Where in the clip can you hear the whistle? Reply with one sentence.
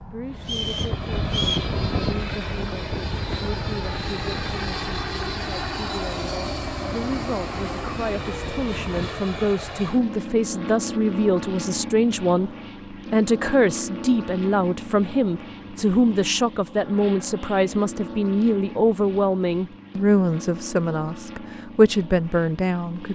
The whistle can be heard from 0.4 to 1.7 s.